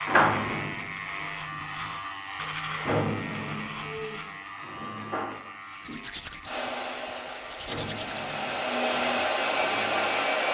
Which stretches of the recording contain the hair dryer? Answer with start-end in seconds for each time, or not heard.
6.5-10.5.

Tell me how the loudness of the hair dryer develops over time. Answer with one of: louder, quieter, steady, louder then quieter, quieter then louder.
louder.